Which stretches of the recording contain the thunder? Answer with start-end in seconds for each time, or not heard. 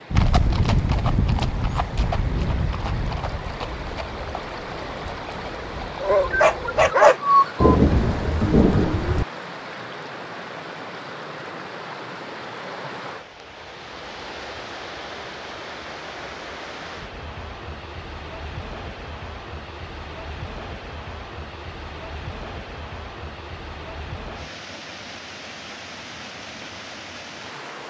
7.6-9.2.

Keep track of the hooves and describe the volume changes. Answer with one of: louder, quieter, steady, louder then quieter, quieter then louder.
quieter.